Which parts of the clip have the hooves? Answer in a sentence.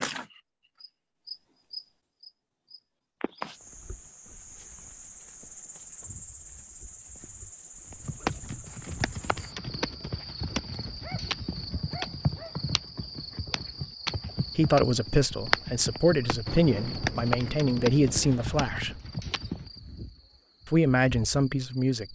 You can hear the hooves from 7.9 to 19.8 s.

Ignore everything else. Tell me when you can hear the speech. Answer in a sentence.
The speech can be heard from 14.6 to 19.0 s and from 20.6 to 22.1 s.